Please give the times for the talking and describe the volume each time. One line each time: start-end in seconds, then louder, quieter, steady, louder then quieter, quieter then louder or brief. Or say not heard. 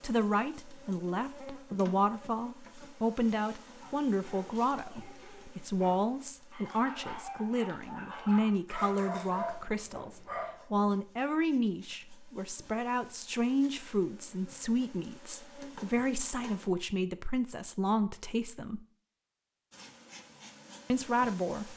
0.0-18.8 steady
20.9-21.7 brief.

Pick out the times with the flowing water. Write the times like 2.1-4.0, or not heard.
not heard.